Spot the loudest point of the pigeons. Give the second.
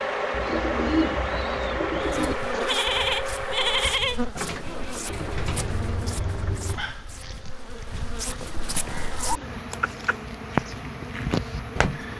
1 s.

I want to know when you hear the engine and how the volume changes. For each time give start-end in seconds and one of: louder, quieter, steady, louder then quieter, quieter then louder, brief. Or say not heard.
0.0-6.8 quieter.